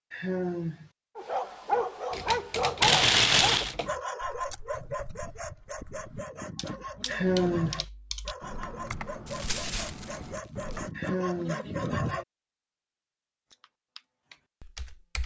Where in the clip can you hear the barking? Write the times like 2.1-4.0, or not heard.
1.1-12.2.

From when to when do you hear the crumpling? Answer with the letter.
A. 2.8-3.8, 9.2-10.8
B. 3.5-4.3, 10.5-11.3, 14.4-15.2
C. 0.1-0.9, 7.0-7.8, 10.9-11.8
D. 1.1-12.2
A.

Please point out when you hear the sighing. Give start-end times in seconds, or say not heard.
0.1-0.9, 7.0-7.8, 10.9-11.8.